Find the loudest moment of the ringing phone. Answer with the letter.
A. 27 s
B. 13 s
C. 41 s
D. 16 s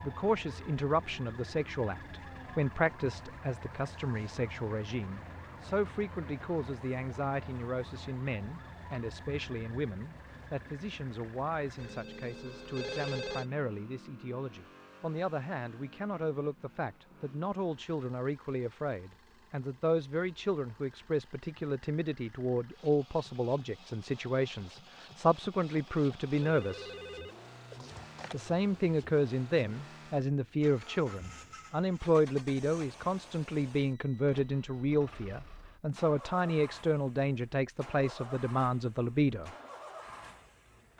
B.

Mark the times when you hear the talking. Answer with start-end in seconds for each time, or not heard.
0.0-26.9, 28.3-39.5.